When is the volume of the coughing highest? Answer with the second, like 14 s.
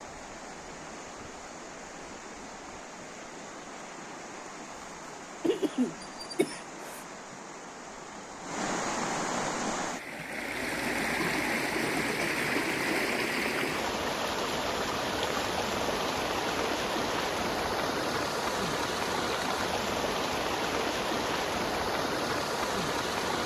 6 s.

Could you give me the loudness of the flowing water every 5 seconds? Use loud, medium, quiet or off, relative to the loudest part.
quiet, medium, loud, loud, loud.